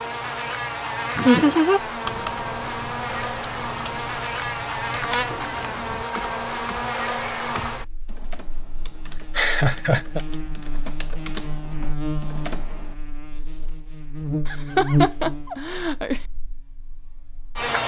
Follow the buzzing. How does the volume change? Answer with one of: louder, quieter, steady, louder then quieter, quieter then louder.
quieter then louder.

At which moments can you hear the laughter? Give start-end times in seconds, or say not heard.
1.1-1.8, 9.3-10.2, 14.4-16.2.